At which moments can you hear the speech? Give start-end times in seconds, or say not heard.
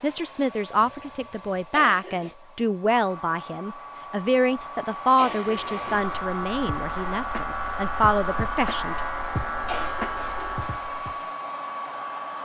0.0-9.0.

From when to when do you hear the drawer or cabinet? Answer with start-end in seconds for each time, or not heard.
not heard.